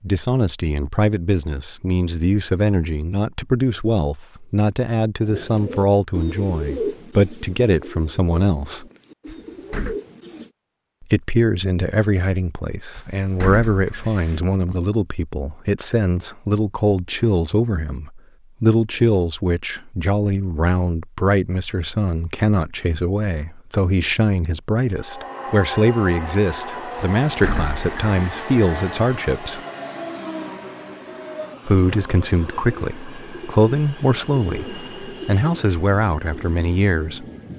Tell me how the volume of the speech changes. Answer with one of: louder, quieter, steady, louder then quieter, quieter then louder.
steady.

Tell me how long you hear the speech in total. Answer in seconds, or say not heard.
33 s.